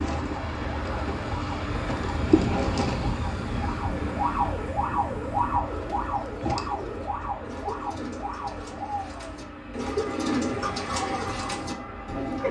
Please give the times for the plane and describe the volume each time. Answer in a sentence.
You can hear the plane from 0.0 to 12.4 s, getting quieter.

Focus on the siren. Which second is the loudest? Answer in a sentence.
The loudest moment of the siren is at 5 seconds.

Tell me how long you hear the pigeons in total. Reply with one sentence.
The pigeons can be heard for 7 seconds in total.